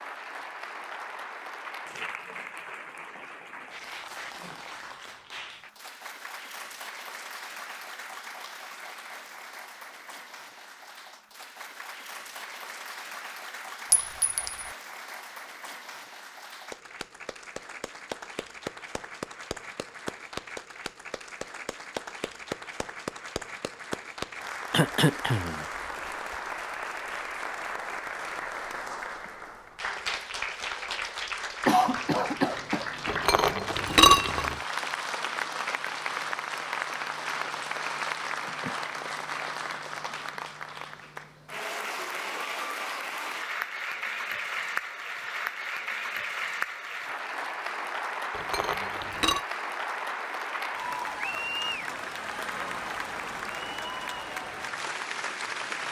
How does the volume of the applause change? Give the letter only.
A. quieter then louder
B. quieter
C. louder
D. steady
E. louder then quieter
C.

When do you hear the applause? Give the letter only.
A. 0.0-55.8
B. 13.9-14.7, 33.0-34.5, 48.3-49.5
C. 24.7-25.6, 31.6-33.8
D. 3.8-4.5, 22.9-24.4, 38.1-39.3
A.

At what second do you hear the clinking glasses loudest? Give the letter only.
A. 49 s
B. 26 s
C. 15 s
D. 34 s
D.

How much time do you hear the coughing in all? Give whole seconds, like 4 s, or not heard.
3 s.